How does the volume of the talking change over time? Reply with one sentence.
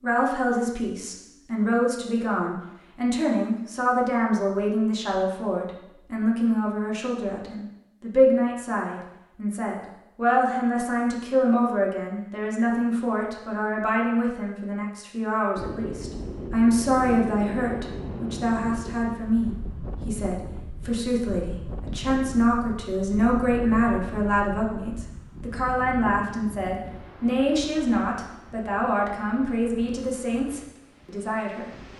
The volume of the talking stays about the same.